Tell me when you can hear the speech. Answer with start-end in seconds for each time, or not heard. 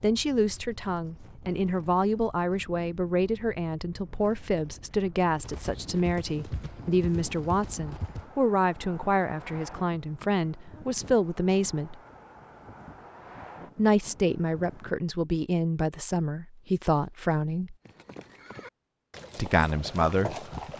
0.0-11.9, 13.8-17.8, 19.4-20.4.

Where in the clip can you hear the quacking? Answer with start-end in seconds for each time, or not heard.
not heard.